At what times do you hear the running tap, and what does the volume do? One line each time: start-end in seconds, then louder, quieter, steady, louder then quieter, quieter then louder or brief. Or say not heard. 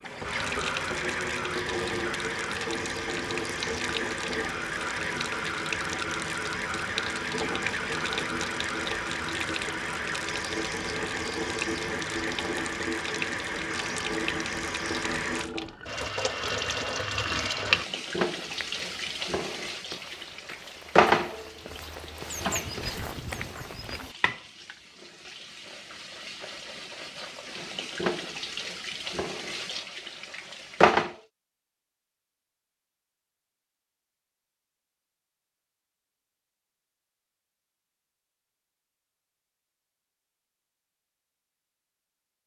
0.0-31.2 quieter.